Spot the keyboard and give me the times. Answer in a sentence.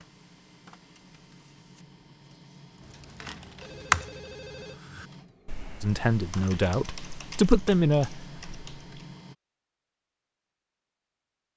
You can hear the keyboard from 3.0 to 9.2 s.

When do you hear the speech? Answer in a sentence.
The speech can be heard from 5.8 to 8.2 s.